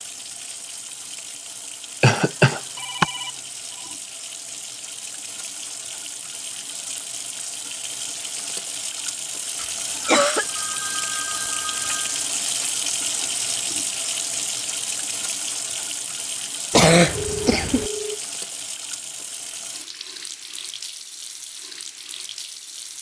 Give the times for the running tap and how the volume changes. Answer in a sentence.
You can hear the running tap from 0.0 to 22.9 s, getting louder then quieter.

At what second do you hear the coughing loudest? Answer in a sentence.
The loudest moment of the coughing is at 17 seconds.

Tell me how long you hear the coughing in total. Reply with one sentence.
The coughing can be heard for 3 seconds in total.